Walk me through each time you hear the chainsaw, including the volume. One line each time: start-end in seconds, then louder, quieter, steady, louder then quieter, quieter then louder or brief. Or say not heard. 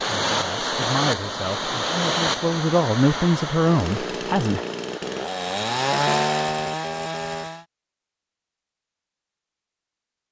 3.6-7.7 louder then quieter.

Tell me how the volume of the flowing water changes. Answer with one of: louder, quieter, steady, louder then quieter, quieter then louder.
quieter.